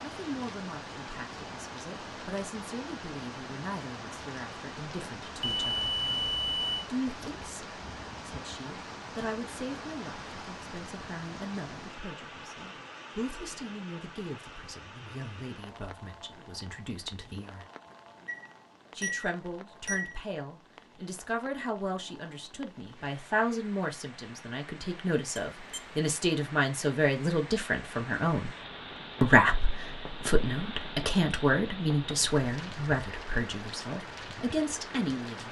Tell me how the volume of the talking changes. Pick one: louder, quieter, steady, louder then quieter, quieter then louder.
louder.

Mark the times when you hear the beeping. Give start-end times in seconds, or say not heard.
5.4-6.8, 18.2-20.1, 25.6-26.0.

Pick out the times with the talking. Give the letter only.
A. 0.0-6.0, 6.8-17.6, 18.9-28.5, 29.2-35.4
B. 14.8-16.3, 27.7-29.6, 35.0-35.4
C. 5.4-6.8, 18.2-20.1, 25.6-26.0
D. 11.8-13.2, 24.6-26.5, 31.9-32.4
A.